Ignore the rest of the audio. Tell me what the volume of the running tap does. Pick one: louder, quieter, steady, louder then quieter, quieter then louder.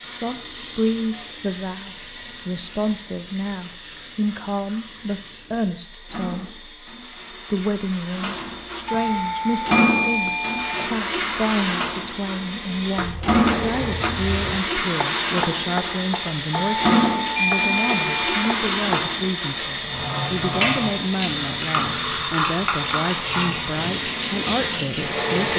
louder.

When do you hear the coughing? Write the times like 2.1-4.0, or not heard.
not heard.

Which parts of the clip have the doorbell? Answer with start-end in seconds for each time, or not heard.
8.8-10.9, 16.5-18.6.